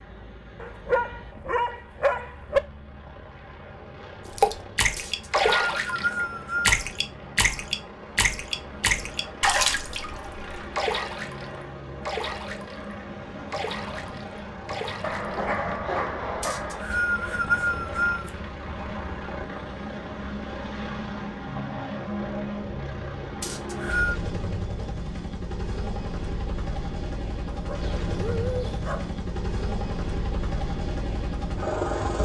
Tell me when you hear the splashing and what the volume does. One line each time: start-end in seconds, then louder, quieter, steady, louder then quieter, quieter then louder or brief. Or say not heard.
4.2-15.5 quieter.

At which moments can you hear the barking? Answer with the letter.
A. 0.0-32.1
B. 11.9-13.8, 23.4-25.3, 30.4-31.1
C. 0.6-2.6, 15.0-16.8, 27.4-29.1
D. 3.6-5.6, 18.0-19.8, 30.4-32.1
C.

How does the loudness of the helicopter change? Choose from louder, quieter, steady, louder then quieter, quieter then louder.
louder.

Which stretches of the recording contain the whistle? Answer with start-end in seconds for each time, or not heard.
5.0-6.8, 16.4-18.3, 23.4-24.1.